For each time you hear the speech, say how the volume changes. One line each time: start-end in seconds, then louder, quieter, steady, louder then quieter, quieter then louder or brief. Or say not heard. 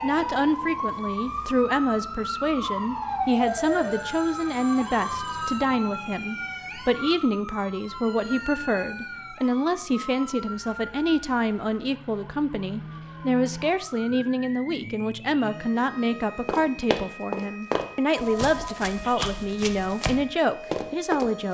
0.0-21.4 steady.